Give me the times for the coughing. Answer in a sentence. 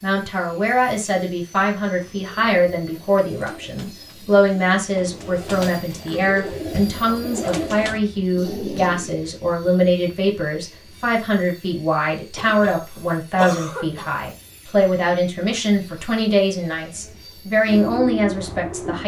The coughing can be heard from 12.3 to 12.8 s and from 13.3 to 14.1 s.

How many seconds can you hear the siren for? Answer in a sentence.
The siren can't be heard in this clip.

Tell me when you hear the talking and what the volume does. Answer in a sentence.
The talking can be heard from 0.0 to 19.0 s, at a steady volume.